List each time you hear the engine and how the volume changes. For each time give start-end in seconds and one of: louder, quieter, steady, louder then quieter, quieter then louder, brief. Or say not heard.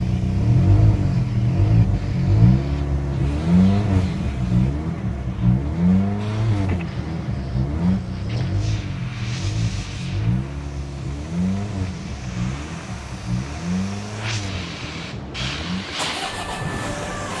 0.0-17.3 quieter.